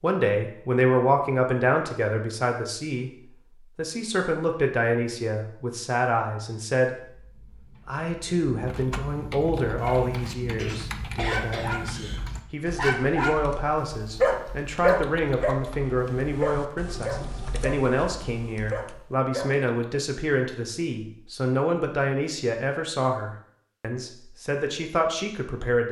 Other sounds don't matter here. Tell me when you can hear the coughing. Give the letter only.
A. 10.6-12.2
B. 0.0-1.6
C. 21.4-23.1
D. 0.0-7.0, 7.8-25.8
A.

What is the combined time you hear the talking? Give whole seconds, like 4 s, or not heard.
25 s.